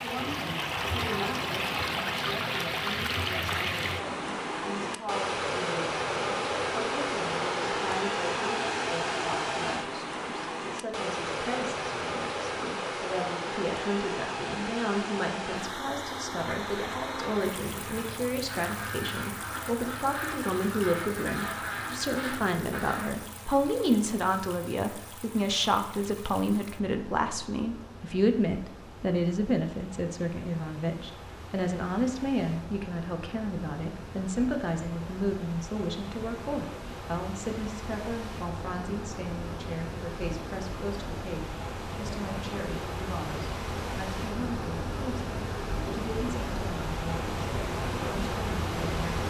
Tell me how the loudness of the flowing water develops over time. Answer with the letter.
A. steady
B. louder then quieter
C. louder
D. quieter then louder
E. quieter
D.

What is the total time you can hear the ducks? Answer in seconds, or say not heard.
7 s.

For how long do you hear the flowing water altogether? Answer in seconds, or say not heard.
49 s.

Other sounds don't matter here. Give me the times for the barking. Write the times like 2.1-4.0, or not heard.
not heard.